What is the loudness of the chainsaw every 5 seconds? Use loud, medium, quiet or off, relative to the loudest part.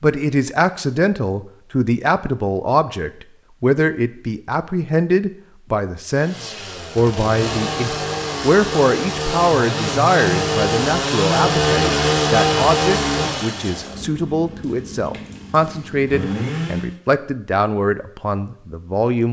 off, medium, loud, medium.